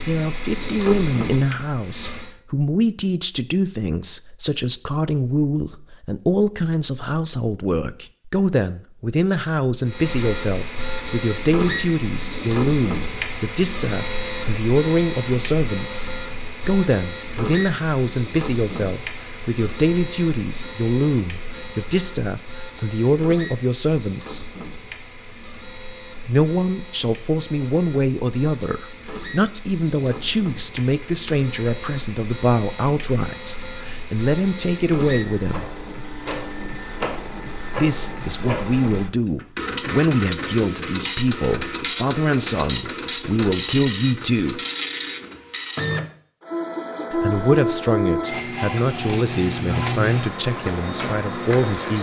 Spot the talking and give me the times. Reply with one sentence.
The talking can be heard from 0.1 to 24.4 s, from 26.2 to 35.7 s, from 37.7 to 44.6 s and from 47.1 to 51.9 s.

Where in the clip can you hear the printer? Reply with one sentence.
The printer can be heard from 0.0 to 2.3 s and from 9.8 to 51.9 s.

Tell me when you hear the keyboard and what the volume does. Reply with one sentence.
You can't hear the keyboard here.